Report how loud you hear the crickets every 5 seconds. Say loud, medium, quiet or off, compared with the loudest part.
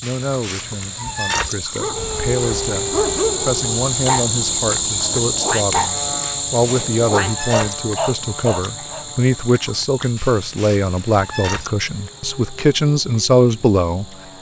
loud, loud, quiet.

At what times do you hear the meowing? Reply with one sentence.
The meowing can be heard from 0.0 to 1.6 s, from 6.2 to 7.8 s and from 10.2 to 11.7 s.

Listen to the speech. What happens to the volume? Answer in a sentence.
The loudness of the speech goes up.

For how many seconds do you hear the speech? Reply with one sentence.
You can hear the speech for 14 seconds altogether.